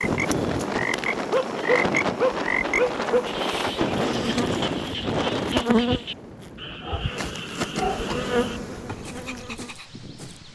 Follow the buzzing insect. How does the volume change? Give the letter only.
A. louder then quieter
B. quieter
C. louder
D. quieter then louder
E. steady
C.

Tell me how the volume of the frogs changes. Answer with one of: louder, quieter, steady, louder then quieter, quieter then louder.
quieter.